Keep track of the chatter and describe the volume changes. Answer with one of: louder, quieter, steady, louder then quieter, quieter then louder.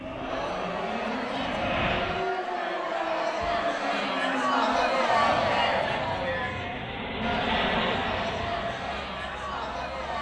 louder then quieter.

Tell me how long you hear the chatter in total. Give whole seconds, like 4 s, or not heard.
10 s.